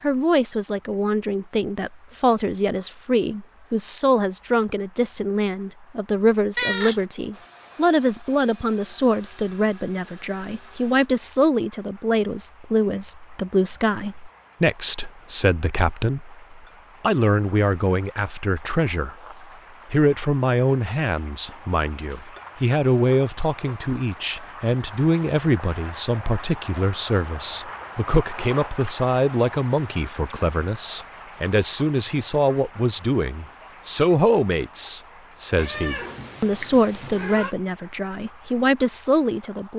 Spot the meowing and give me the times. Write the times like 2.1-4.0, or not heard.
6.5-7.0, 35.5-37.5.